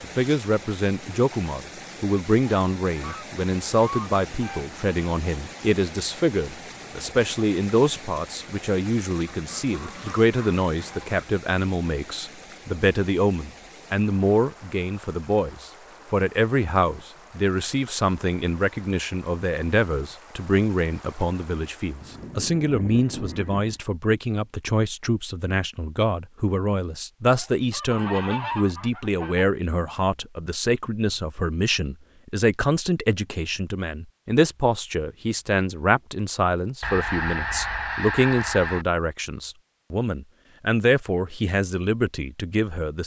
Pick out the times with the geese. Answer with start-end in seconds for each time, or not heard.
3.0-4.8, 9.3-11.2, 22.0-23.8, 27.2-29.4, 36.8-38.9.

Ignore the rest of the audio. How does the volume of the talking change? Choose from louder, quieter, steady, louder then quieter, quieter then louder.
steady.